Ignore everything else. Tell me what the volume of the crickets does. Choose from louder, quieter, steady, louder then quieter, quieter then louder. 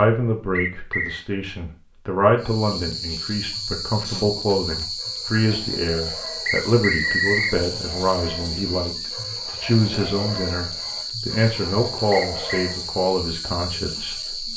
steady.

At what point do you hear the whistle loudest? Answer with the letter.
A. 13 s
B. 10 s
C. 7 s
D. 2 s
C.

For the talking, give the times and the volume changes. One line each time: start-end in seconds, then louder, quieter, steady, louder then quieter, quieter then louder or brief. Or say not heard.
0.0-14.5 steady.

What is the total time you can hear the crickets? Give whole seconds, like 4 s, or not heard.
12 s.